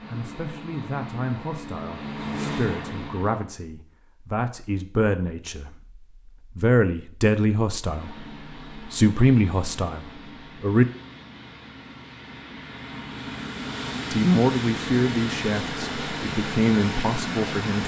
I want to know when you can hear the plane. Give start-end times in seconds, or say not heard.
0.0-3.5, 7.8-17.8.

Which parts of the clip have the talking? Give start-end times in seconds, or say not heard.
0.1-10.8, 14.1-17.8.